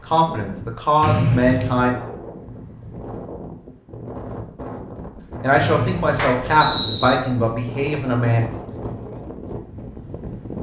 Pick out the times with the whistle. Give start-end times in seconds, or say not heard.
1.0-1.9, 5.5-7.2.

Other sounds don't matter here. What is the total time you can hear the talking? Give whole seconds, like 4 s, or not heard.
5 s.